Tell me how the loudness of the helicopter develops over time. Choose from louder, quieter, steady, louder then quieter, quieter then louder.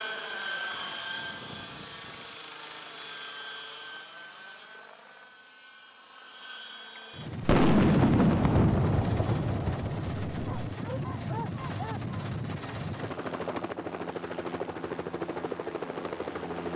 quieter then louder.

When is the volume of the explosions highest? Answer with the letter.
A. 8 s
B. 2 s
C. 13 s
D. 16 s
A.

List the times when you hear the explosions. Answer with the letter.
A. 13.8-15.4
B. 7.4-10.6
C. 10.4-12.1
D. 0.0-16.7
B.